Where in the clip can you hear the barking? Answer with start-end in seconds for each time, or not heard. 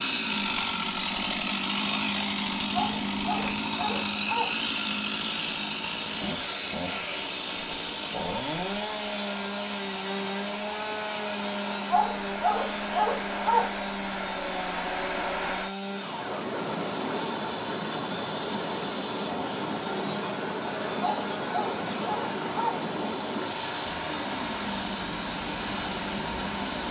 2.7-4.5, 11.9-13.7, 21.0-22.8.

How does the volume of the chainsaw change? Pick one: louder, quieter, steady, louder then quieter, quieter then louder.
quieter.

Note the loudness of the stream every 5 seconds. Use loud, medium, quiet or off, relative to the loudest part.
medium, medium, loud, loud, loud, loud.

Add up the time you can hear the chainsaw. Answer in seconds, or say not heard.
27 s.